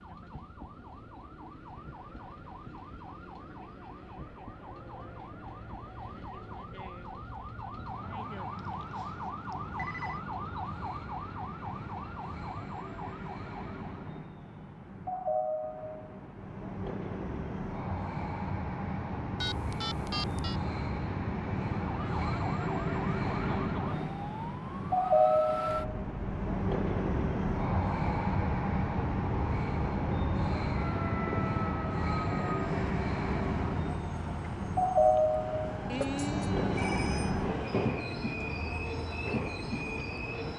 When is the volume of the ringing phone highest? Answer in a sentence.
The loudest moment of the ringing phone is at 36 seconds.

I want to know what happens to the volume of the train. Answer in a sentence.
The volume of the train goes up.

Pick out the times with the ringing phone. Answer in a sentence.
The ringing phone can be heard from 8.6 to 10.2 s, from 19.4 to 20.6 s and from 35.9 to 37.4 s.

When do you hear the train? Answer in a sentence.
The train can be heard from 0.1 to 40.5 s.